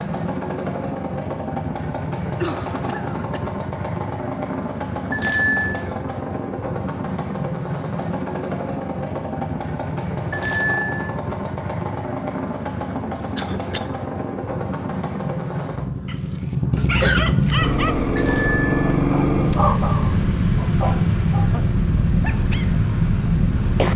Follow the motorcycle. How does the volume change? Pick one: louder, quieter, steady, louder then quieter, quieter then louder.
louder.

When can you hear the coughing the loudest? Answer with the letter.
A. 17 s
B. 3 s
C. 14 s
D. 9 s
A.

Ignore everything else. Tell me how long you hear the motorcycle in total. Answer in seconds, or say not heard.
24 s.